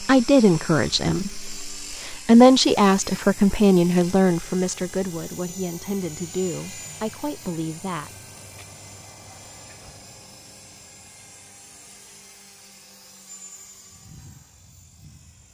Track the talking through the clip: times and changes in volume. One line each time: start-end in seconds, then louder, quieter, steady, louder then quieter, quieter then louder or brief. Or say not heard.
0.0-8.1 louder then quieter.